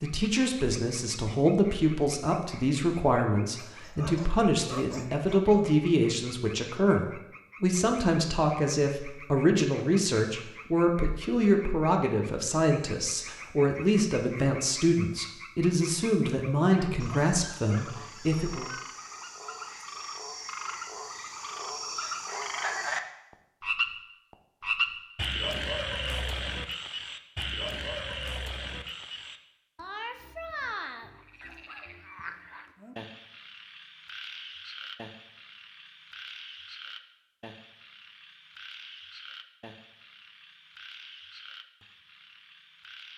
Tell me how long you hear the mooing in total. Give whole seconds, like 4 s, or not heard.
not heard.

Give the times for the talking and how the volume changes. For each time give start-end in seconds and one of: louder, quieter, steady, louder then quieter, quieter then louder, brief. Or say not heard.
0.0-18.6 steady.